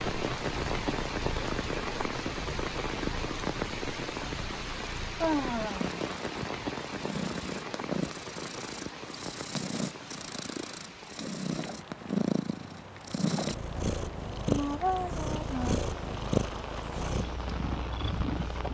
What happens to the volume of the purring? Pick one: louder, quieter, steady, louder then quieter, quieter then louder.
louder.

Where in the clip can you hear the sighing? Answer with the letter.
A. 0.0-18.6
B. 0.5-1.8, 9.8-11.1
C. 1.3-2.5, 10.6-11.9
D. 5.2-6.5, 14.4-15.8
D.